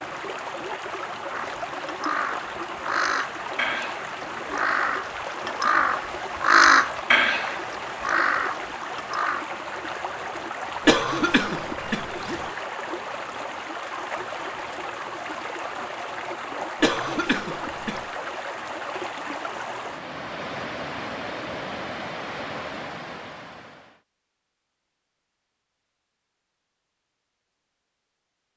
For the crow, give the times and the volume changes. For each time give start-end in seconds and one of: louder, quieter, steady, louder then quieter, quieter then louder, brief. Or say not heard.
1.3-9.4 louder then quieter.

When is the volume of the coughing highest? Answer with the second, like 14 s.
11 s.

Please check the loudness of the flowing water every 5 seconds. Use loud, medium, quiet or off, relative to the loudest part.
loud, loud, loud, loud, loud, off.